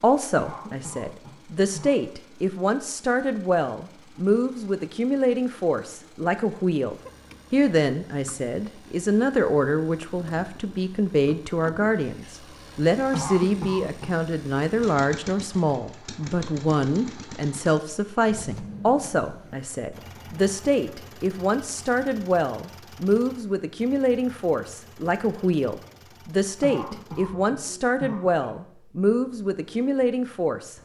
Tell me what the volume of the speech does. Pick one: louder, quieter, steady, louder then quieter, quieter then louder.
steady.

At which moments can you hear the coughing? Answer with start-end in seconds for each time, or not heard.
0.3-1.9, 13.1-14.1, 26.6-28.6.